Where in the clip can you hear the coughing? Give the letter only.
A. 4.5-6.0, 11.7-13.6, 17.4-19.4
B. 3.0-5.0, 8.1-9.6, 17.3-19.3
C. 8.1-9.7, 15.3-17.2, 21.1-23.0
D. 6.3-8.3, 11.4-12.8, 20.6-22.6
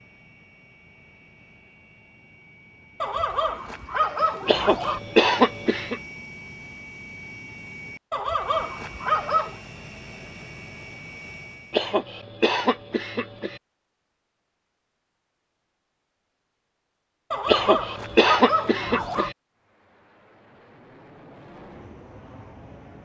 A.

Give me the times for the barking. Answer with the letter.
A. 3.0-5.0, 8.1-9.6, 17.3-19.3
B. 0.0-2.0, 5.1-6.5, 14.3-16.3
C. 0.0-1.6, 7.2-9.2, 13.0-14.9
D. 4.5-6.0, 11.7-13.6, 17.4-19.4
A.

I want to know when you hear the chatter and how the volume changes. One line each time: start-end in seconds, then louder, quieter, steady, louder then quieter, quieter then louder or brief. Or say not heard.
not heard.